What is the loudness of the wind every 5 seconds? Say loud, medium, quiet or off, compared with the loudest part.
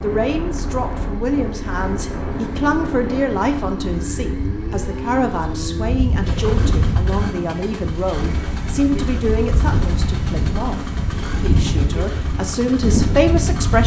medium, loud, loud.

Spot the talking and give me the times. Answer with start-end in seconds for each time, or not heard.
0.0-10.8, 11.3-13.8.